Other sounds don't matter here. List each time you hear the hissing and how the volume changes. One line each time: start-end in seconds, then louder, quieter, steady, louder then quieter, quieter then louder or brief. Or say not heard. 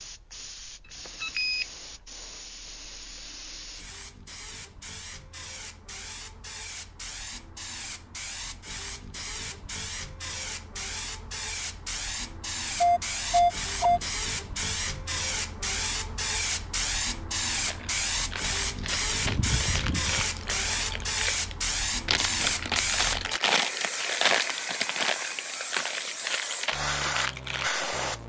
0.0-28.2 louder.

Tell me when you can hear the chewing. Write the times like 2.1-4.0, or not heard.
17.6-27.9.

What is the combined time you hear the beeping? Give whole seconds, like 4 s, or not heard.
3 s.